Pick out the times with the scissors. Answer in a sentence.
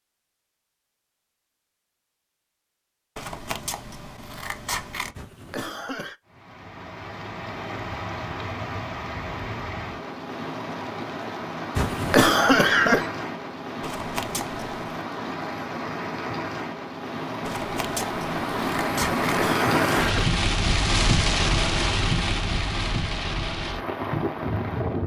You can hear the scissors from 3.1 to 5.2 s, from 13.8 to 15.0 s and from 17.4 to 19.4 s.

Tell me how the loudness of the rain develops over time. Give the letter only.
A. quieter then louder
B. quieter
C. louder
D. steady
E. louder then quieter
C.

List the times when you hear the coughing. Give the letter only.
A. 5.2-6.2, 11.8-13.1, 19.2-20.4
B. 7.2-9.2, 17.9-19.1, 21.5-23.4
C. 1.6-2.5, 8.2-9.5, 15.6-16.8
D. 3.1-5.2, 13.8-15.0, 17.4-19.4
A.